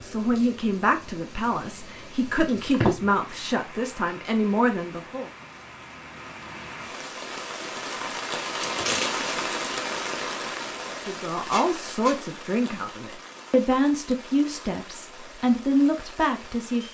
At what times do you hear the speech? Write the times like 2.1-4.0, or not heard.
0.0-5.3, 11.0-16.8.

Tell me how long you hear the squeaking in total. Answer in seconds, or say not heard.
2 s.